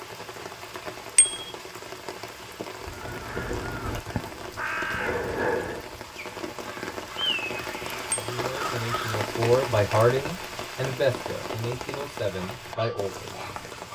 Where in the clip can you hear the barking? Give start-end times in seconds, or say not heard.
12.4-13.8.